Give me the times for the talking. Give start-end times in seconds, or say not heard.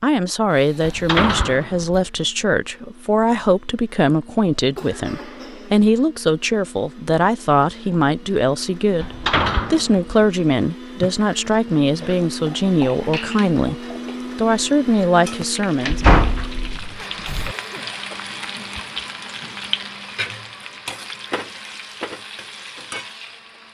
0.0-16.1.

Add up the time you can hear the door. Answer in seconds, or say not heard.
4 s.